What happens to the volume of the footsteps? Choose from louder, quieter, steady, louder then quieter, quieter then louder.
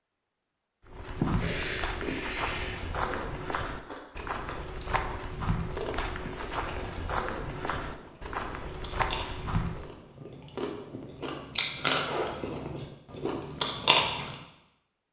steady.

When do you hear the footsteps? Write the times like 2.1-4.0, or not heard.
0.8-9.9.